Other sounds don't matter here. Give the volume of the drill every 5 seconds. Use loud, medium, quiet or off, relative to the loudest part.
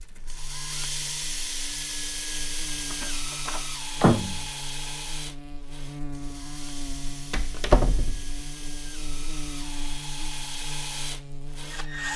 loud, medium, loud.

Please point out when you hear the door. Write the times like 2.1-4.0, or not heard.
2.9-4.4, 7.1-8.4.